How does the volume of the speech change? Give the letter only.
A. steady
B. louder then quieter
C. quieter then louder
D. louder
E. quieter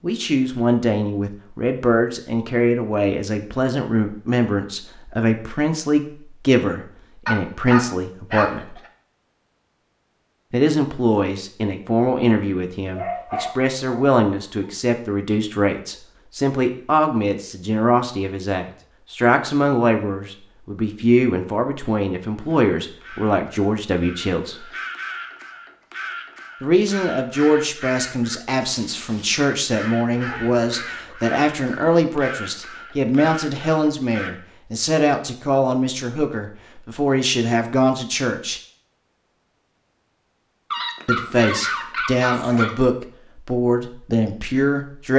A.